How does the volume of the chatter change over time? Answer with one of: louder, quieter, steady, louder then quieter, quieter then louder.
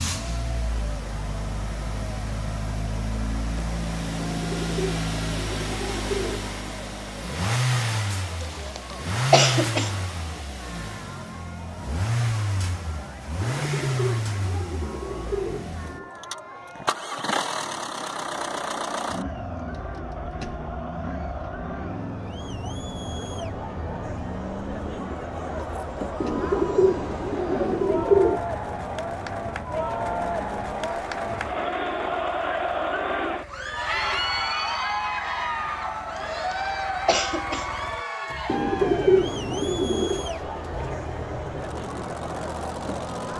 louder.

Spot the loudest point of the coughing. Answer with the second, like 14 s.
9 s.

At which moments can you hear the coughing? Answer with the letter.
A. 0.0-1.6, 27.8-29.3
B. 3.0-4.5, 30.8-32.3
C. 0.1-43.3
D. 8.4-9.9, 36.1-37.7
D.